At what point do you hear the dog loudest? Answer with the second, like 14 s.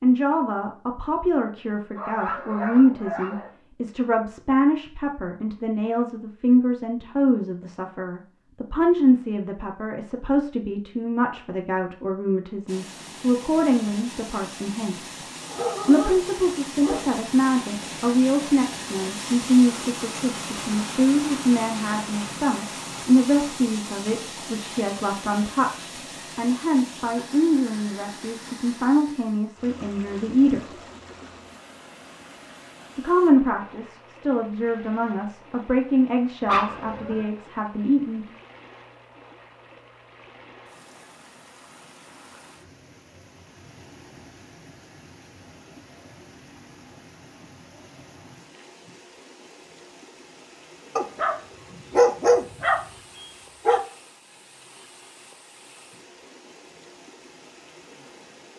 52 s.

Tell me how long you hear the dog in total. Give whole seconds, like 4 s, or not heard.
7 s.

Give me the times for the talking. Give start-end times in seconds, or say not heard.
0.0-15.2, 15.8-30.8, 33.0-38.2.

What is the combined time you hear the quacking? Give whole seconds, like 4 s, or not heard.
not heard.